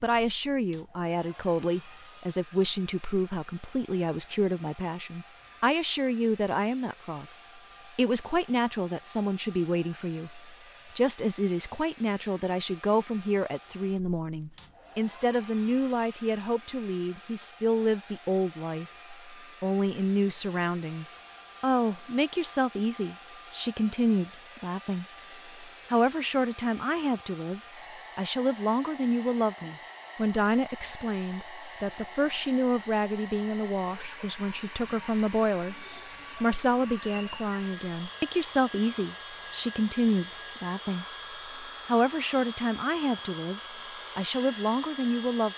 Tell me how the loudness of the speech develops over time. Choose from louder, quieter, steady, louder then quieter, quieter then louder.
steady.